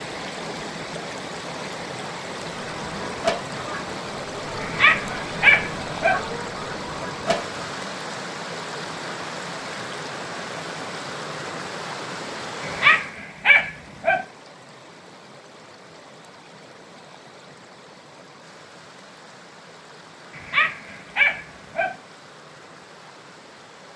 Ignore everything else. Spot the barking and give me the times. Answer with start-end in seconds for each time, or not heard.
4.6-6.2, 12.6-14.2, 20.4-21.9.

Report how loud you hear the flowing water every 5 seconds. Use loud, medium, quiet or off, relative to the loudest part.
loud, loud, loud, quiet, quiet.